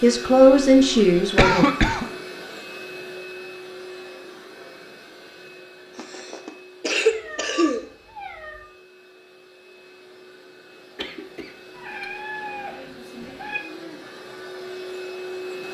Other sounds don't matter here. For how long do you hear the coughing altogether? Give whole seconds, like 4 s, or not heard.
4 s.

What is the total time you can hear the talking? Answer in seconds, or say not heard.
2 s.